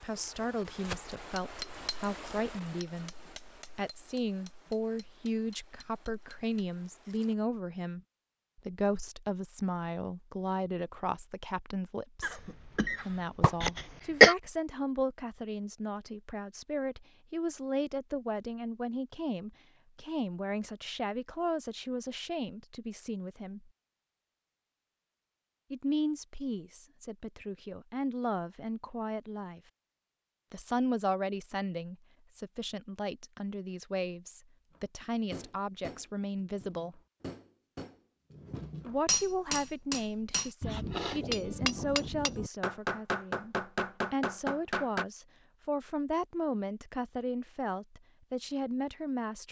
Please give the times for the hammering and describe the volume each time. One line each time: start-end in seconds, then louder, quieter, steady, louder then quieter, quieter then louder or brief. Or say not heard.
0.0-7.3 quieter
34.7-45.0 louder.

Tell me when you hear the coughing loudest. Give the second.
14 s.